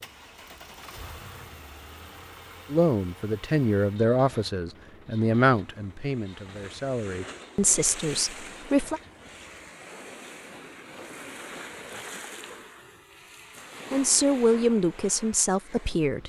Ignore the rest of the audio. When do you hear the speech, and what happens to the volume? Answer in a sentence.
You can hear the speech from 2.7 to 9.0 s, getting quieter then louder; and briefly from 13.9 to 16.2 s.